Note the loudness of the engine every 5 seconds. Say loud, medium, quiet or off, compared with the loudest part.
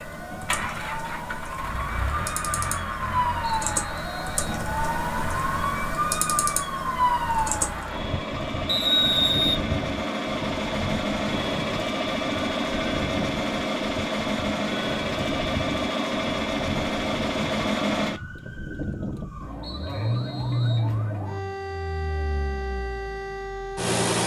medium, medium, loud, loud, loud.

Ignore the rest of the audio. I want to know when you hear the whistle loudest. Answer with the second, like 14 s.
9 s.